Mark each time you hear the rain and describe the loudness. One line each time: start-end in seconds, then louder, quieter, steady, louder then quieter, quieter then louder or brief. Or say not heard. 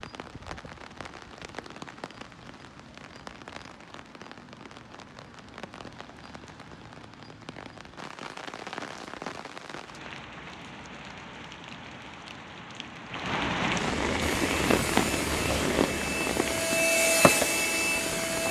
0.0-18.4 louder.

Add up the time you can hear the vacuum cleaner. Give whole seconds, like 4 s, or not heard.
4 s.